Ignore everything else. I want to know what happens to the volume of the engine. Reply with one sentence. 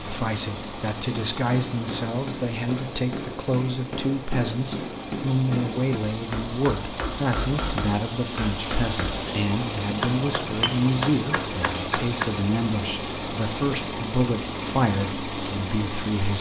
The loudness of the engine goes up.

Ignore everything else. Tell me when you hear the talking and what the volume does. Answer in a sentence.
You can hear the talking from 0.0 to 16.3 s, at a steady volume.